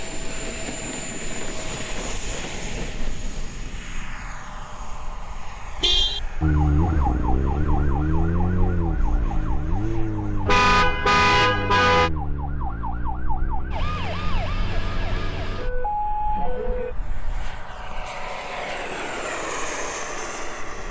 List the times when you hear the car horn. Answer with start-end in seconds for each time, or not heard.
5.8-6.2, 10.4-12.1.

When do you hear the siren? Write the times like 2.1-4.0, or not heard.
6.4-16.9.